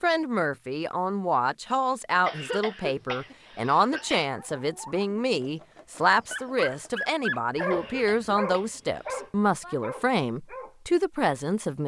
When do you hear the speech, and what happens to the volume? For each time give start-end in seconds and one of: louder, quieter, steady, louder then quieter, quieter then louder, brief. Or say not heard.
0.0-11.8 steady.